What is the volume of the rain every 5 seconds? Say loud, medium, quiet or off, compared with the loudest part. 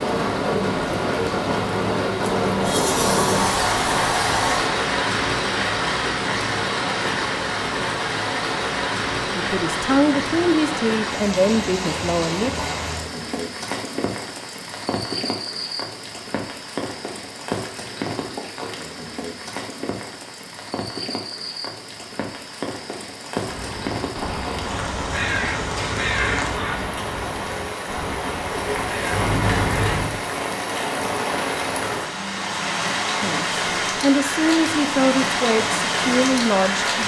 loud, loud, medium, medium, medium, medium, loud, loud.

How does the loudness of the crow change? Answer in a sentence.
The loudness of the crow goes up, then down.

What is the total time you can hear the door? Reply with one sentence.
You can hear the door for 3 seconds altogether.